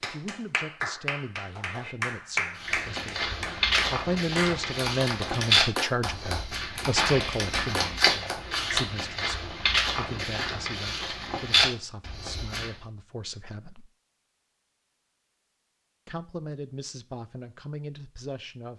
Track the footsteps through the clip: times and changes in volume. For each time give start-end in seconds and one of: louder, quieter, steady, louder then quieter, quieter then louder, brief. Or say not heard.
2.5-12.8 steady.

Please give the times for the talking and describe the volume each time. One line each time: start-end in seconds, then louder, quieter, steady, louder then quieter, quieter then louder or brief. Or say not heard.
0.0-13.9 louder then quieter
16.1-18.7 brief.